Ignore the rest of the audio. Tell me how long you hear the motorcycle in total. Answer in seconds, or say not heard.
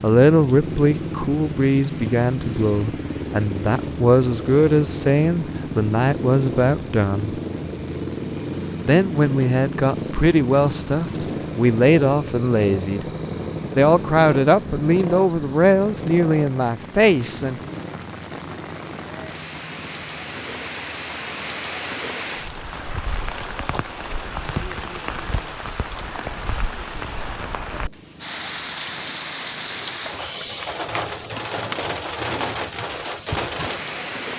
34 s.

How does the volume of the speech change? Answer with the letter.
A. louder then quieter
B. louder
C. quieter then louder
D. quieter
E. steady
E.